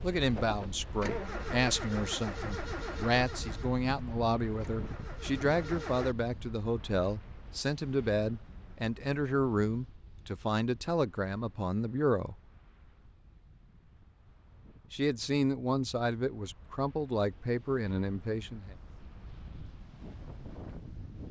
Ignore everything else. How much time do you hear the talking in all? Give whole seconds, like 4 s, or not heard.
16 s.